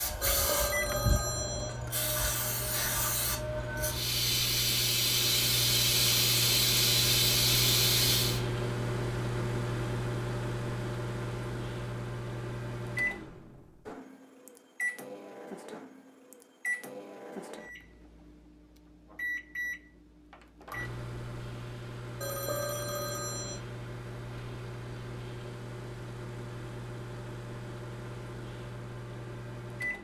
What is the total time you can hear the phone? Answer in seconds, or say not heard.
3 s.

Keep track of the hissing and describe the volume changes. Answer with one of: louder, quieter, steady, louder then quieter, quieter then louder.
louder.